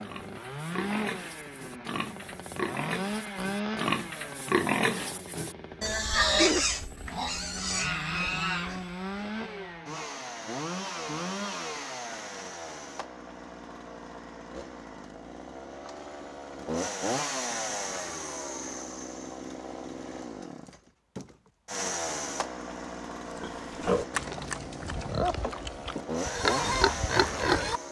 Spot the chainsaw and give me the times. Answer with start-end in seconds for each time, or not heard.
0.0-27.8.